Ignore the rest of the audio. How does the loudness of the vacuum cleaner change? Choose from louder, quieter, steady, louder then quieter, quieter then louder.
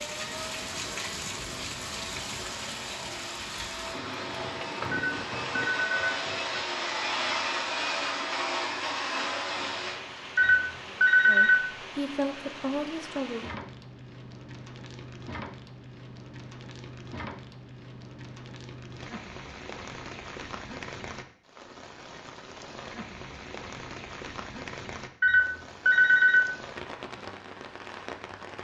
louder.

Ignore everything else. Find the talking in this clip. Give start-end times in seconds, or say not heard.
11.2-13.4.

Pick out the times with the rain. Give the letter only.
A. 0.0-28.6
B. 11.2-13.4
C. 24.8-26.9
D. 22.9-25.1
A.